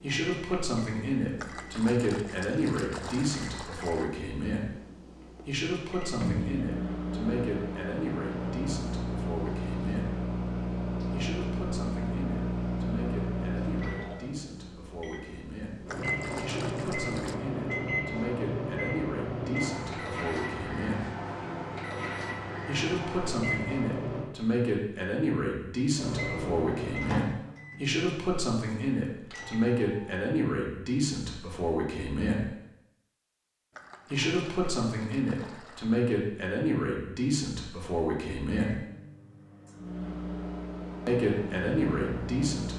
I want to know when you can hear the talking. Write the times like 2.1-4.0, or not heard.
0.0-4.7, 5.5-10.1, 11.1-21.1, 22.6-32.5, 34.0-38.8, 41.0-42.7.